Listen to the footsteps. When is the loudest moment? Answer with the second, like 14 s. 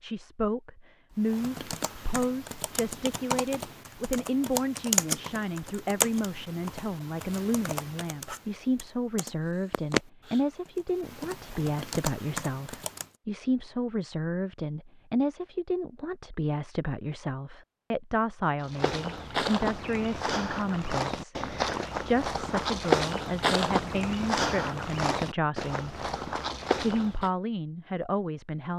23 s.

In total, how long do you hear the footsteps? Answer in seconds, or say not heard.
9 s.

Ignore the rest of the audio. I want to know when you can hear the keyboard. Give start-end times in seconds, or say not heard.
1.2-13.1.